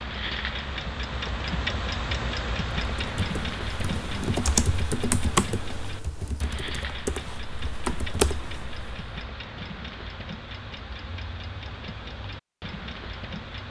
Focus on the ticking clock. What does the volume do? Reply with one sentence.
The loudness of the ticking clock goes down.